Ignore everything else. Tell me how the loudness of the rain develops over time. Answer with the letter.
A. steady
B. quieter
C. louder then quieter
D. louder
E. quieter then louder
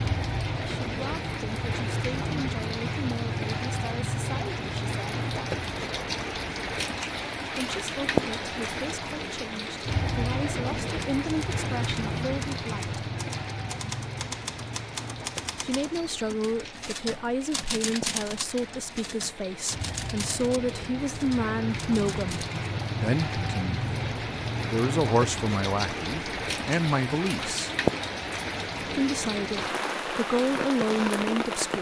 E.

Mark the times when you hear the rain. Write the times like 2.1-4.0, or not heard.
0.0-31.7.